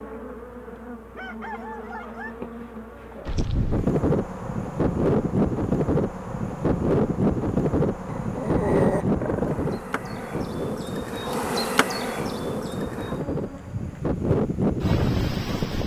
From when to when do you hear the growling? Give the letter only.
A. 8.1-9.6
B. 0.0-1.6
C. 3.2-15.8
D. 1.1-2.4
A.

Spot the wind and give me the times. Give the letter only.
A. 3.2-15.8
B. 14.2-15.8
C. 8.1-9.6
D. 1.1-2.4
A.